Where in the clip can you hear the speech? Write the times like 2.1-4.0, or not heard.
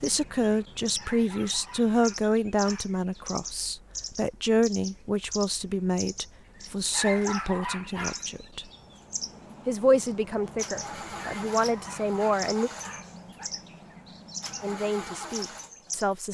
0.0-8.7, 9.7-12.7, 14.6-16.2.